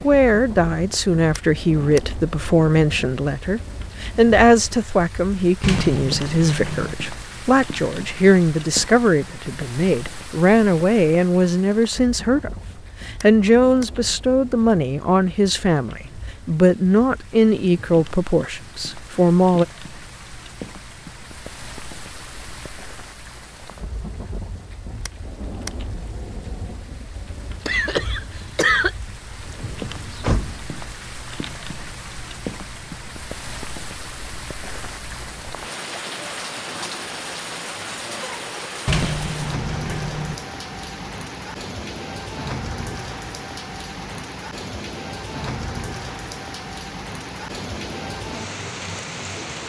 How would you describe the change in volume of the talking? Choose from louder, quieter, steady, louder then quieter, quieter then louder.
steady.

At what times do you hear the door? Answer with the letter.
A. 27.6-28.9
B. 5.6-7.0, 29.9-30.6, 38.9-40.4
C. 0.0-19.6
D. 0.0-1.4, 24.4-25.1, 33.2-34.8
B.